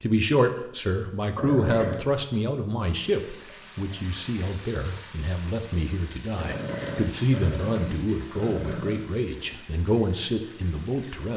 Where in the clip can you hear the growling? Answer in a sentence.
The growling can be heard from 1.4 to 2.0 s and from 6.3 to 9.1 s.